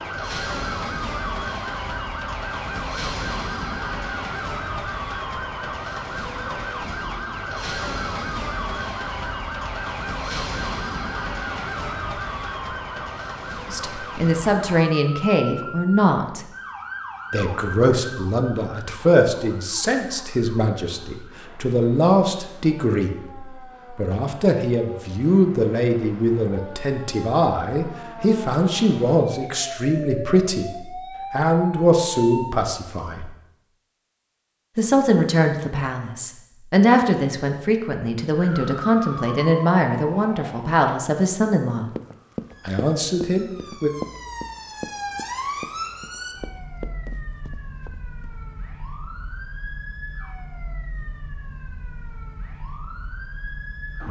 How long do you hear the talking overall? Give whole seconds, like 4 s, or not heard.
27 s.